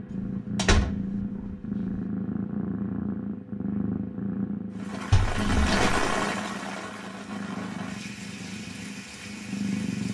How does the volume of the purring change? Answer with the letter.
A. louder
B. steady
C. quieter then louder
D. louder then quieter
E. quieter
E.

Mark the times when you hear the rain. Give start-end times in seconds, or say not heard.
4.7-10.0.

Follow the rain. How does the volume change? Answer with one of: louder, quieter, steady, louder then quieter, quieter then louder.
quieter.